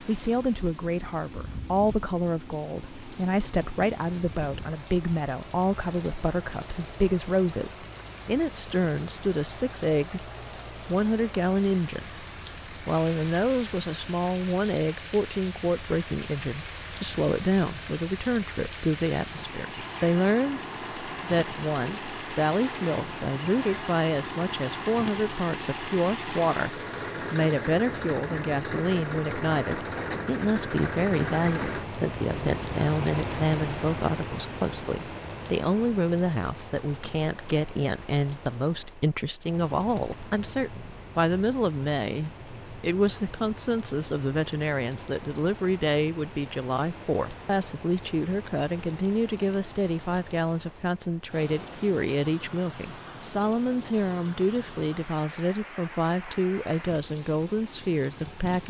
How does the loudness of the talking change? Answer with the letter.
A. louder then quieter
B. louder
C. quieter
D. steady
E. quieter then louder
D.